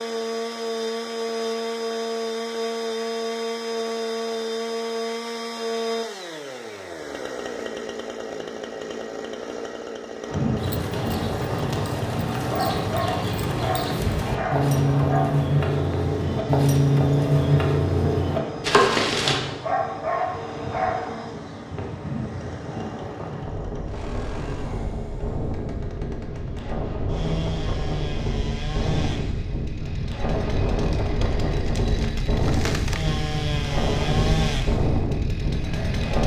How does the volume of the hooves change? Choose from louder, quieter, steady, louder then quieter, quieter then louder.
louder.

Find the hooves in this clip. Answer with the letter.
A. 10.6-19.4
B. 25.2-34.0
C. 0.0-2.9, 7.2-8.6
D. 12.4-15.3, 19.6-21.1
A.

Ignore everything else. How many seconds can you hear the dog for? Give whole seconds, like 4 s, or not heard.
4 s.